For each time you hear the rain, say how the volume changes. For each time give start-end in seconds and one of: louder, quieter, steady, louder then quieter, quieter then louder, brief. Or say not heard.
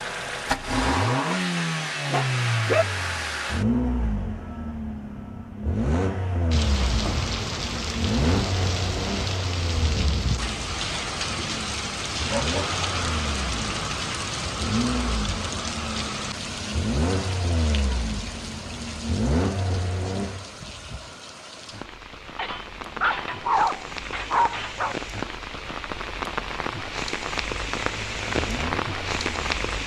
6.5-29.8 quieter then louder.